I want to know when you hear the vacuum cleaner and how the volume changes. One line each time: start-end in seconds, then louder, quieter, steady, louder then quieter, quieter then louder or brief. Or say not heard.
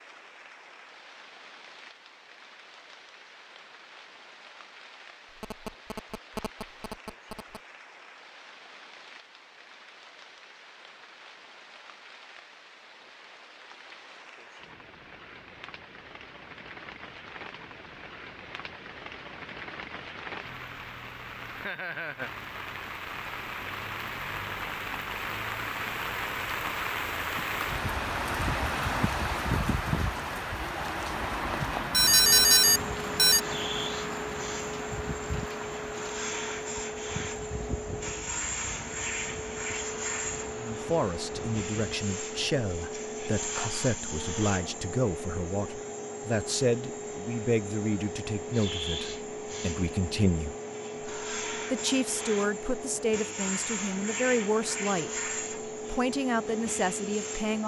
32.1-57.6 steady.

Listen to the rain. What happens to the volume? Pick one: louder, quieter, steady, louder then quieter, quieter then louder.
louder then quieter.